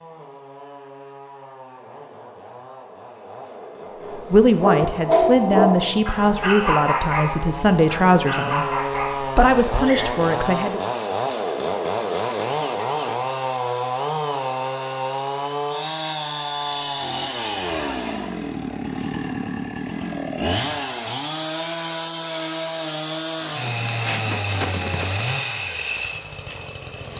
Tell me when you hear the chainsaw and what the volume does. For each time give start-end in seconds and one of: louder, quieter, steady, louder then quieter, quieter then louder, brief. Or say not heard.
0.0-27.1 louder.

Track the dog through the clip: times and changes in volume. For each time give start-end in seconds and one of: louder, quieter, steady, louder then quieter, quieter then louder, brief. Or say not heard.
4.0-10.1 quieter.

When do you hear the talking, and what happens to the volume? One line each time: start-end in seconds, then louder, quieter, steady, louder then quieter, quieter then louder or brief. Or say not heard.
4.3-10.8 steady.